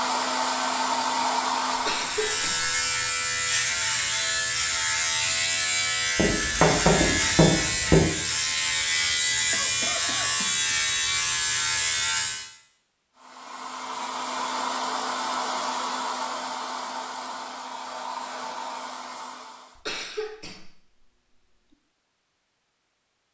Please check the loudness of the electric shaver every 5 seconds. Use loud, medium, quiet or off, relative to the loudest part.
loud, loud, loud, off, off.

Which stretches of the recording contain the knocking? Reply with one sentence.
You can hear the knocking from 6.2 to 8.1 s.